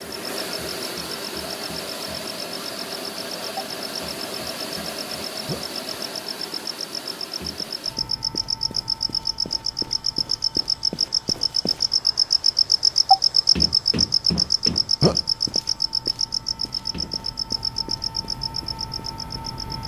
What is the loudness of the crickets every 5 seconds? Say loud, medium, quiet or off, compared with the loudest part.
quiet, medium, loud, medium.